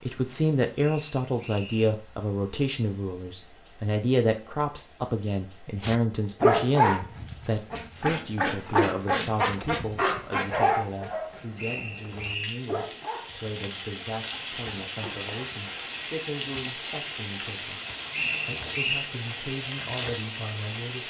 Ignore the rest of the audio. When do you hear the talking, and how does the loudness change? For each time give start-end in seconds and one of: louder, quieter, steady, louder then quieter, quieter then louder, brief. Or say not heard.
0.0-17.8 quieter
18.4-21.0 brief.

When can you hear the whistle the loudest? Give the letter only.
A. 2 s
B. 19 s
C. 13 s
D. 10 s
B.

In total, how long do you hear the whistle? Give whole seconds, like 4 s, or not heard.
3 s.